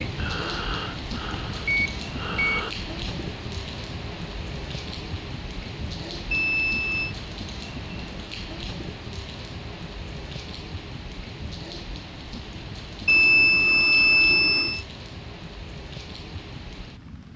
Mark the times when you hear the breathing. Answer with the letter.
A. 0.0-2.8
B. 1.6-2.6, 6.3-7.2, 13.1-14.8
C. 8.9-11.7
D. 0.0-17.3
A.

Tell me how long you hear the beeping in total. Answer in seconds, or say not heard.
4 s.